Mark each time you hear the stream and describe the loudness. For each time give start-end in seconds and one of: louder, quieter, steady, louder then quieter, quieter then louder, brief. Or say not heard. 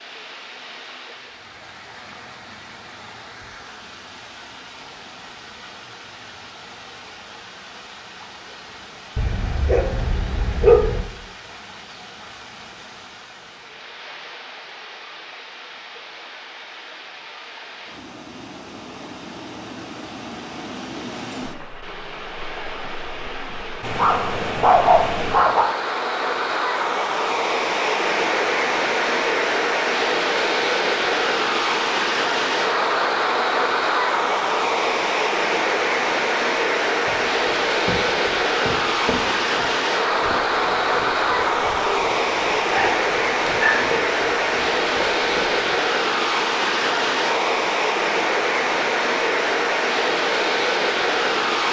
0.0-51.6 louder.